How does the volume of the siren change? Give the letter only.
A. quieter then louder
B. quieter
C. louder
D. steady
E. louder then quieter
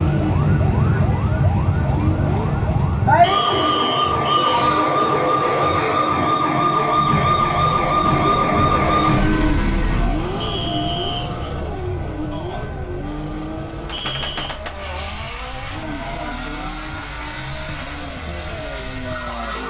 B.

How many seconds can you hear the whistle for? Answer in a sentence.
You can hear the whistle for 3 seconds altogether.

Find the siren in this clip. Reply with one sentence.
The siren can be heard from 0.0 to 19.6 s.